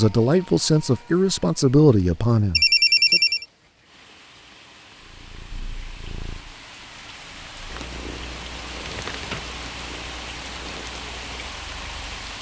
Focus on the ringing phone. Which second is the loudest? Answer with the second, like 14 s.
3 s.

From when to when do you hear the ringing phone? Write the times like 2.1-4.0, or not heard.
2.5-3.5, 8.8-9.4.